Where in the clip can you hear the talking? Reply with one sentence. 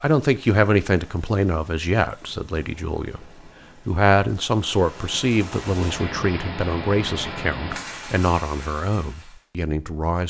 You can hear the talking from 0.0 to 3.2 s and from 3.9 to 10.2 s.